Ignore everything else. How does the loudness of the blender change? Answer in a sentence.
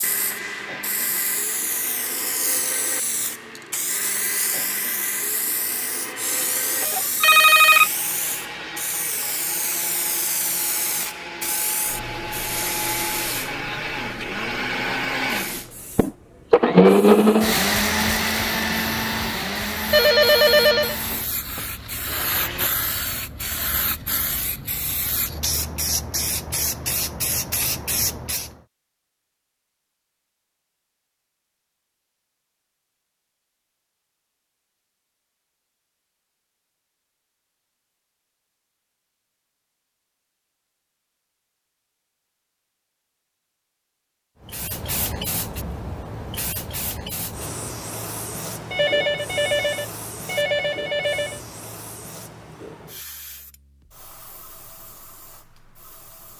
The volume of the blender goes up, then down.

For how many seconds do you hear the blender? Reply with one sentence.
You can hear the blender for 23 seconds altogether.